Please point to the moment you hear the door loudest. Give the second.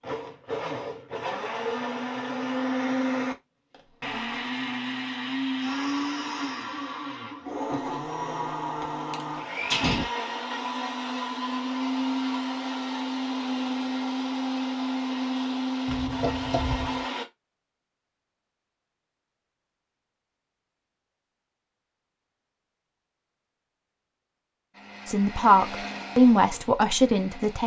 10 s.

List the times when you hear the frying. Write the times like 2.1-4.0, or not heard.
not heard.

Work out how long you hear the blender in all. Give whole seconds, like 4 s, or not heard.
20 s.